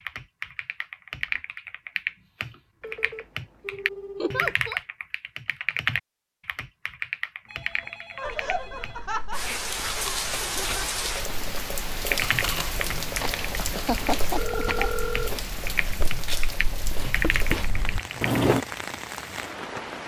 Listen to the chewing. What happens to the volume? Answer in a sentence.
The loudness of the chewing goes up.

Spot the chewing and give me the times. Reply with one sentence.
The chewing can be heard from 8.2 to 18.6 s.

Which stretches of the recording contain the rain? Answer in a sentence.
The rain can be heard from 9.3 to 20.0 s.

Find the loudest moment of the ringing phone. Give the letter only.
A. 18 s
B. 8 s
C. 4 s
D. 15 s
D.